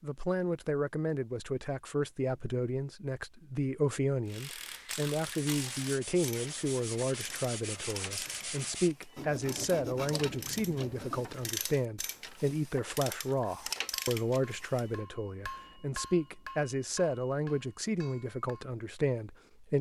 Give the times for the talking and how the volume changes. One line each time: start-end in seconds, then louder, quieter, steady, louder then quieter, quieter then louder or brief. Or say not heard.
0.0-19.7 steady.